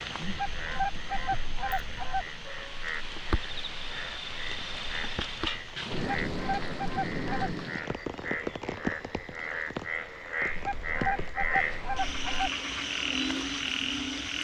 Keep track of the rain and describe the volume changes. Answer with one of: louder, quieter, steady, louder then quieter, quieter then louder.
louder then quieter.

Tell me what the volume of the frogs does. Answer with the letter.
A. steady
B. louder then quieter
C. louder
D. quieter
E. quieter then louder
C.